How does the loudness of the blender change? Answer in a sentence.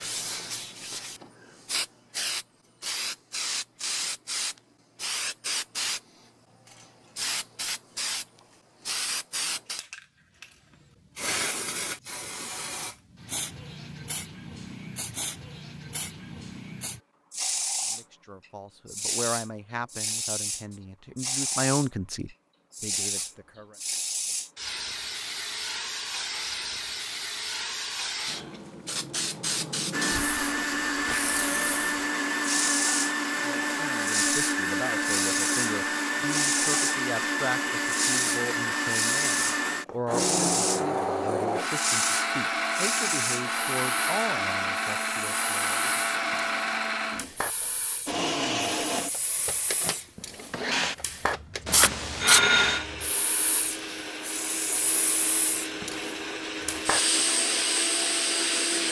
The loudness of the blender goes down.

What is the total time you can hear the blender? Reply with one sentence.
The blender can be heard for 29 seconds in total.